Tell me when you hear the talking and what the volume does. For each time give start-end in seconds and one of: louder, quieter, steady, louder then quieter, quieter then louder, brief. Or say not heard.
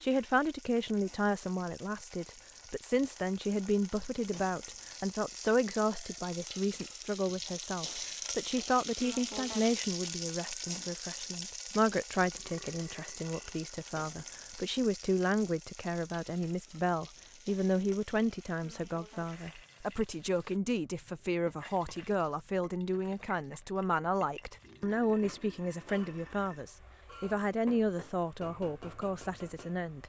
0.0-30.0 steady.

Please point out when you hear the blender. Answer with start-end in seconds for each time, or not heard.
not heard.